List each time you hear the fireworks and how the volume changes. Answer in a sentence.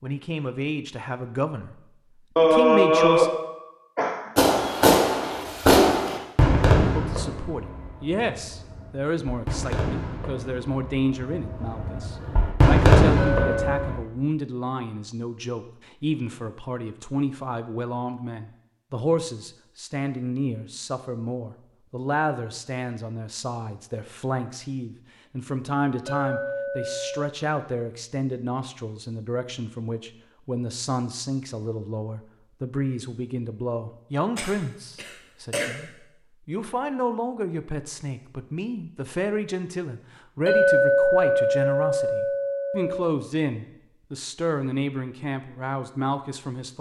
You can hear the fireworks from 4.3 to 13.9 s, getting quieter then louder.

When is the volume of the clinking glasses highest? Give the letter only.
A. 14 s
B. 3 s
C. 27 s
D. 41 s
D.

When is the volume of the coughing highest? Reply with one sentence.
The loudest moment of the coughing is at 3 seconds.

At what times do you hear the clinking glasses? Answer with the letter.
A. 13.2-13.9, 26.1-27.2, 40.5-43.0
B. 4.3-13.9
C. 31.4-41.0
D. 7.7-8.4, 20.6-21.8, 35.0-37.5
A.